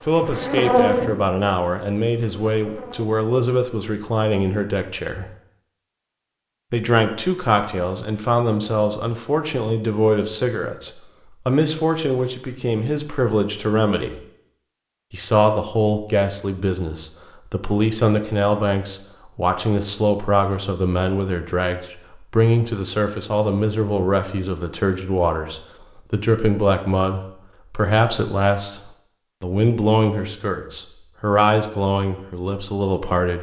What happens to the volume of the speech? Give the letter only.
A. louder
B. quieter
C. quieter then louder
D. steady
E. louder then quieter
D.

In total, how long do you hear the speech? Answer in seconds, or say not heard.
31 s.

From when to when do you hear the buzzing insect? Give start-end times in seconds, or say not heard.
0.0-3.1.